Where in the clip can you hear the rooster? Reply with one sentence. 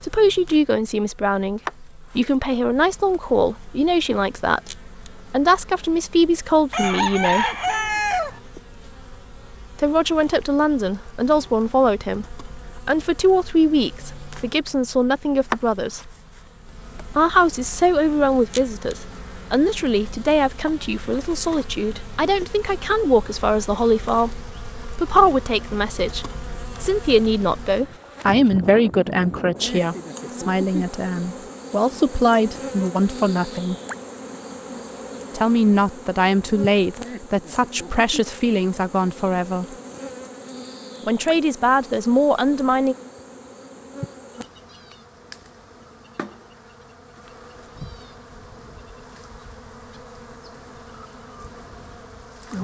You can hear the rooster from 6.7 to 8.4 s.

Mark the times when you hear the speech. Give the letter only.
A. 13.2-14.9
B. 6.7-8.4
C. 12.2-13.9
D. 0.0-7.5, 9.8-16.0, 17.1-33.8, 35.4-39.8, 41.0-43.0
D.